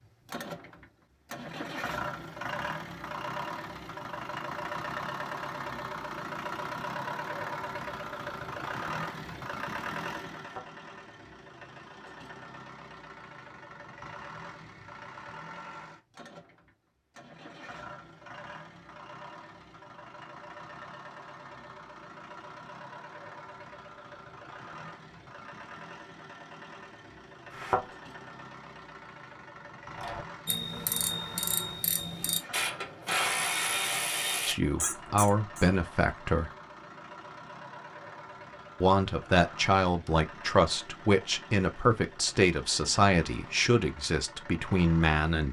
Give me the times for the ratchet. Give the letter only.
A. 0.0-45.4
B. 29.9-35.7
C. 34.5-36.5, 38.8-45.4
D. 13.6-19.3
B.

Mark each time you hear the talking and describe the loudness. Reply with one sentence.
The talking can be heard briefly from 34.5 to 36.5 s; and from 38.8 to 45.4 s, at a steady volume.